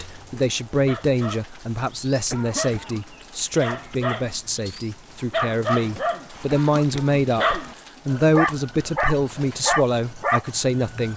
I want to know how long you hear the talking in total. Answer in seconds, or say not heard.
11 s.